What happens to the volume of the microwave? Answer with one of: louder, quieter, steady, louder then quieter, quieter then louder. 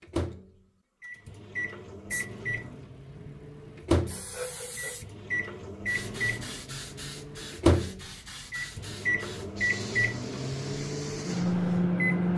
louder.